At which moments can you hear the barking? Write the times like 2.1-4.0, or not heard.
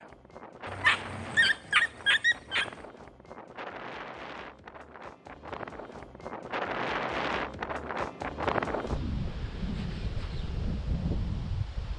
0.7-2.7.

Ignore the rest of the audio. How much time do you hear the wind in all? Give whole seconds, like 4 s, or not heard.
12 s.